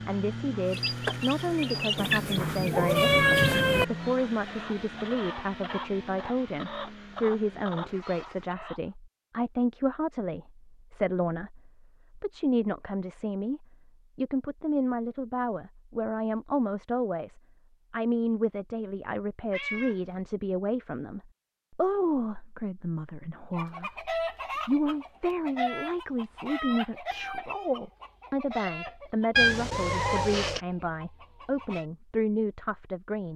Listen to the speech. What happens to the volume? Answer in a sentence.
The volume of the speech stays about the same.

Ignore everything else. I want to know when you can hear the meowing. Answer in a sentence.
The meowing can be heard from 1.9 to 3.9 s, from 19.5 to 20.0 s and from 29.4 to 30.6 s.